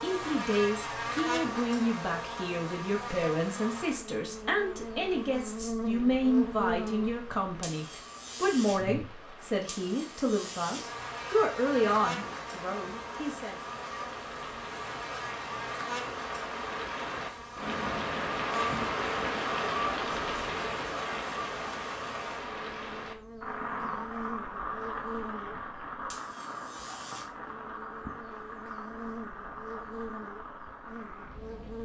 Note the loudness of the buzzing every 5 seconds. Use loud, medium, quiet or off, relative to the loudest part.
loud, loud, loud, loud, medium, medium, medium.